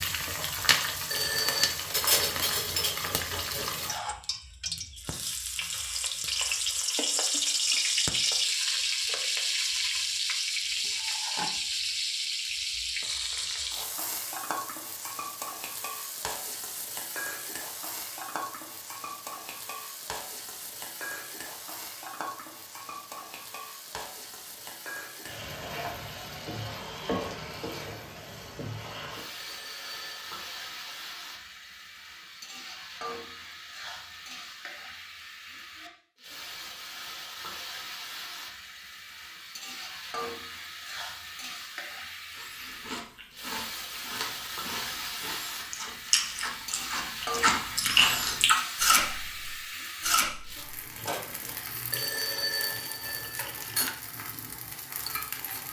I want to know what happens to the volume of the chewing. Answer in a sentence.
The volume of the chewing goes up, then down.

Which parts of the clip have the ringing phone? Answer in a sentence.
You can hear the ringing phone from 1.1 to 1.8 s, from 29.4 to 31.1 s and from 51.9 to 54.0 s.